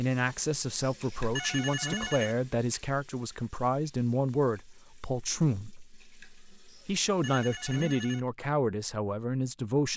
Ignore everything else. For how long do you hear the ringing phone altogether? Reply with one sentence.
You can hear the ringing phone for 3 seconds altogether.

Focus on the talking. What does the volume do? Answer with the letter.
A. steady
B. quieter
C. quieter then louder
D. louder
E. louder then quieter
A.